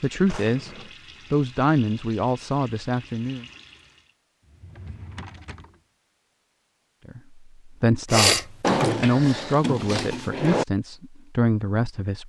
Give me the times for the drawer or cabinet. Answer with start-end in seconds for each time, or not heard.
0.2-0.9, 4.5-5.8, 8.6-10.7.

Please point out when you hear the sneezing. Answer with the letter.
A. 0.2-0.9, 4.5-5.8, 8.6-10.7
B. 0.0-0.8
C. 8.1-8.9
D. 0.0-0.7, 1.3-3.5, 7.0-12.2
C.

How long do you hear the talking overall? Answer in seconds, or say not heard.
8 s.